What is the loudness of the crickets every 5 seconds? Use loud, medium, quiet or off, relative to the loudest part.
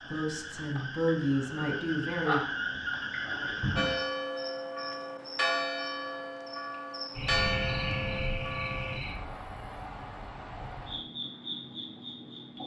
loud, loud, medium.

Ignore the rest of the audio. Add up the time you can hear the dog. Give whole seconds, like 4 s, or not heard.
not heard.